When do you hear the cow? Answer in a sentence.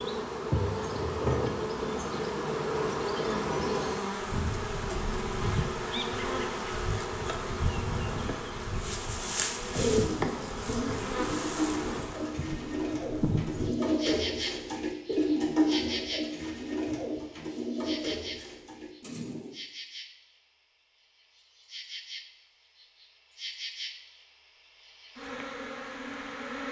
You can't hear the cow here.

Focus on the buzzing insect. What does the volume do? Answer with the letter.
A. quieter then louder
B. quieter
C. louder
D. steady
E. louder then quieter
B.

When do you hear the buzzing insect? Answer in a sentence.
The buzzing insect can be heard from 0.0 to 26.6 s.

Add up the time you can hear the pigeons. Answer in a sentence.
You can hear the pigeons for 10 seconds altogether.